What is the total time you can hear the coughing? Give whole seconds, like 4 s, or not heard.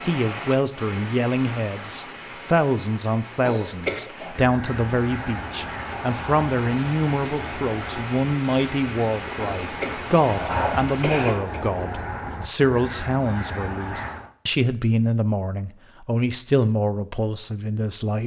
3 s.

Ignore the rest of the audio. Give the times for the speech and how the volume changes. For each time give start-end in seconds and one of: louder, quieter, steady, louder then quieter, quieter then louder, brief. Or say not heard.
0.0-18.2 steady.